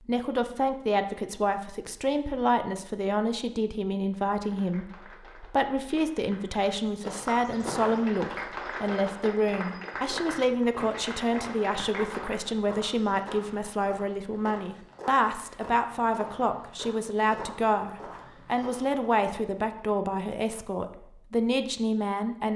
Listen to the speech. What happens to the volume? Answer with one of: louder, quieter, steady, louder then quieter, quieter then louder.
steady.